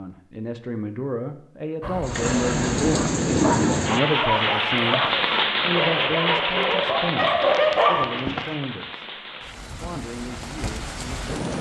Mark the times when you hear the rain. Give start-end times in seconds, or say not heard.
2.0-11.5.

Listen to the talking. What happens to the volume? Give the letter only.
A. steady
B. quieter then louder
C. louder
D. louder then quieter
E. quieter
E.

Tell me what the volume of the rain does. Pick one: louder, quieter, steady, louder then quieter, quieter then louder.
quieter.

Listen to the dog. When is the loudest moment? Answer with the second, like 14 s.
8 s.